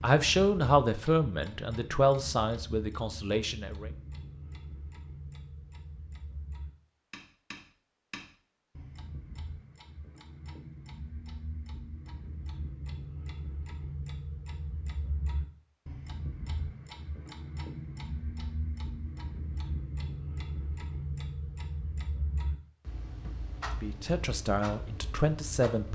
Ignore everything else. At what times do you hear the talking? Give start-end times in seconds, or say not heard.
0.0-3.9, 23.8-25.9.